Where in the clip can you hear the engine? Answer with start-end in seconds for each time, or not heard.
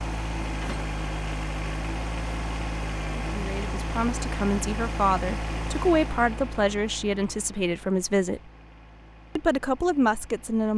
0.0-10.7.